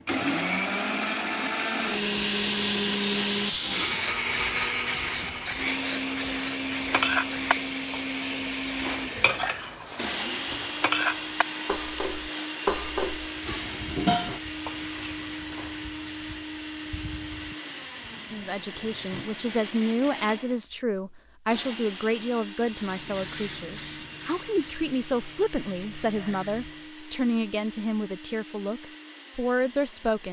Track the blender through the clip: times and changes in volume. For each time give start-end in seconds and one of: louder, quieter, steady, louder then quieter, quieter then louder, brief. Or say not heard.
0.0-30.2 quieter.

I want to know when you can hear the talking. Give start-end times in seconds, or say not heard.
18.2-30.2.